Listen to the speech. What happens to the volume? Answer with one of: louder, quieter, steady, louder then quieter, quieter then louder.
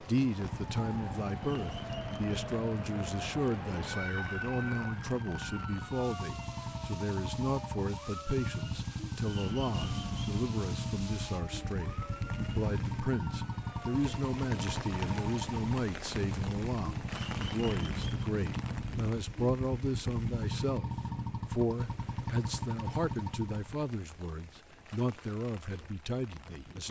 steady.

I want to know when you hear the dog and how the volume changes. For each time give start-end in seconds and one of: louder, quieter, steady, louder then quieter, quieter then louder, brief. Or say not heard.
not heard.